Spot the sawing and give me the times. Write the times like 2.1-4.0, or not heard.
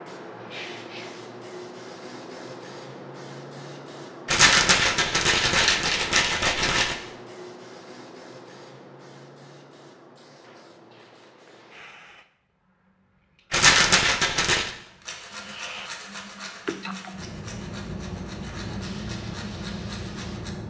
14.8-20.5.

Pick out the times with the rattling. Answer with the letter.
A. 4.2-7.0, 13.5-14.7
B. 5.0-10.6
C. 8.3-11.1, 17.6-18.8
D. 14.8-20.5
A.